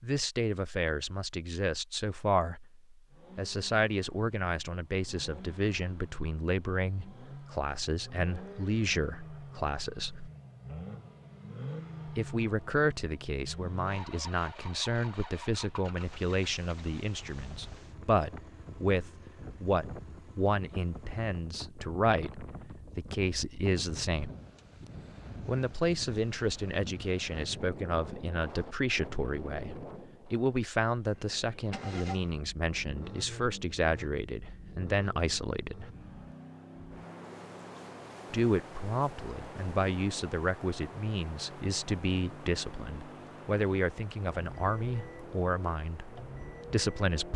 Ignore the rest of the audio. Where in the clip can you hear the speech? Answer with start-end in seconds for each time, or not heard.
0.0-10.3, 12.1-24.3, 25.4-35.9, 38.3-47.3.